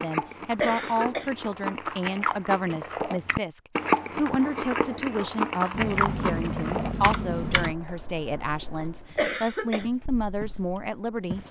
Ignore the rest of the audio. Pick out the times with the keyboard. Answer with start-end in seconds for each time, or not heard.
5.7-7.8.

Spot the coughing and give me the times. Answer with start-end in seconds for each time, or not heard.
0.6-1.3, 9.2-9.8.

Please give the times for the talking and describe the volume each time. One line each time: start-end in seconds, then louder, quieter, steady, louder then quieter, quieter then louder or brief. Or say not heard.
0.0-11.4 steady.